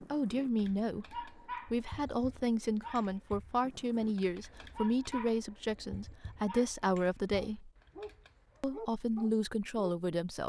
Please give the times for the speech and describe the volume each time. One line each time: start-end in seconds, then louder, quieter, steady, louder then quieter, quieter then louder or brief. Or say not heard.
0.0-7.7 steady
8.6-10.4 brief.